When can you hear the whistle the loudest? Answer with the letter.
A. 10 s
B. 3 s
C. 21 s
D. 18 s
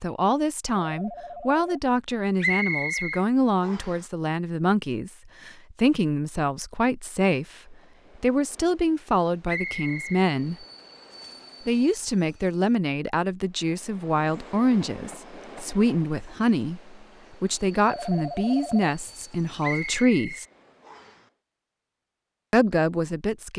B.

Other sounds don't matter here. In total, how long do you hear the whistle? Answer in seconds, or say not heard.
4 s.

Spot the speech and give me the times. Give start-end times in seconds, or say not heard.
0.0-10.7, 11.7-20.4, 22.5-23.5.